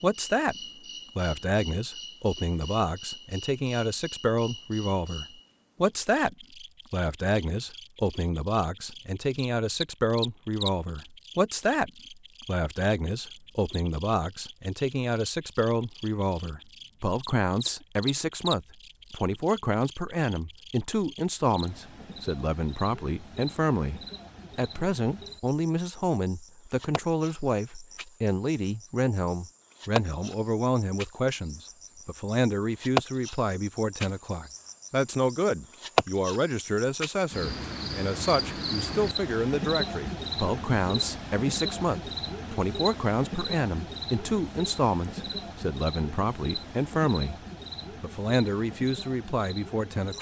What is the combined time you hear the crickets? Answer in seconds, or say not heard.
50 s.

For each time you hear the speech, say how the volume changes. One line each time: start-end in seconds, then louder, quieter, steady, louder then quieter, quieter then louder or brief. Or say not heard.
0.0-0.6 brief
1.1-47.4 steady
48.0-50.1 brief.